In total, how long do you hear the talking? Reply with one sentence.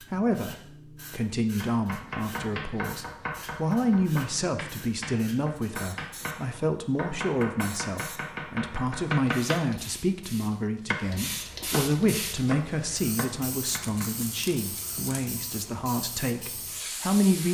You can hear the talking for 17 seconds altogether.